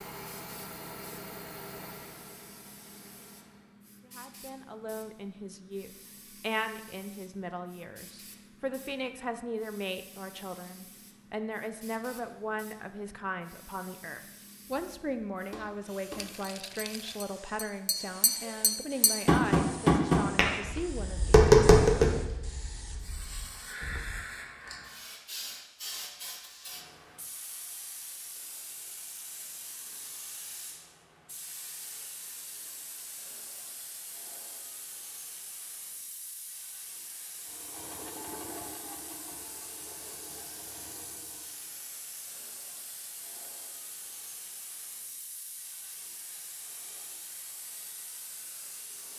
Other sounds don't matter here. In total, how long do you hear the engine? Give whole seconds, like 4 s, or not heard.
8 s.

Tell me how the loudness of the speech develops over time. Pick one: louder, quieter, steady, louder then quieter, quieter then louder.
steady.